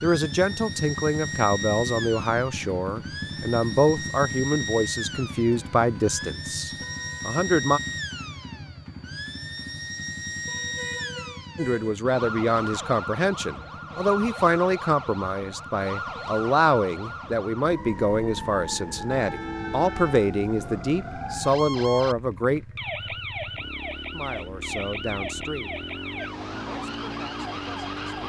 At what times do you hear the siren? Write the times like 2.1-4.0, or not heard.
0.0-28.2.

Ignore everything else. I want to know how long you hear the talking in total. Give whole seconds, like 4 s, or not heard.
22 s.